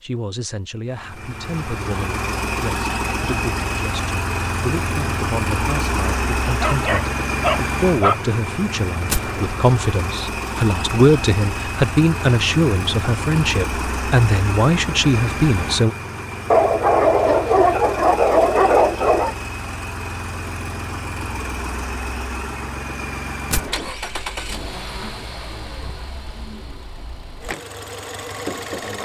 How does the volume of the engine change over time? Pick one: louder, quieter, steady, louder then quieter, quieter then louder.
quieter.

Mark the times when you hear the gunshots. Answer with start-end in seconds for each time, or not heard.
9.1-9.6, 23.5-23.9.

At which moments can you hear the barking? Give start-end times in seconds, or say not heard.
6.6-8.2, 16.5-19.4.